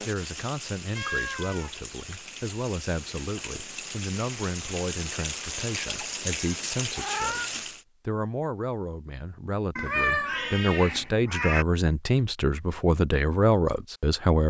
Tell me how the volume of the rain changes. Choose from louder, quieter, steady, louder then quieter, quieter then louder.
louder.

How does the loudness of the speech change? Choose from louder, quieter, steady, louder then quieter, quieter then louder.
louder.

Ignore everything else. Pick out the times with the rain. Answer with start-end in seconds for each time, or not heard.
0.0-7.8.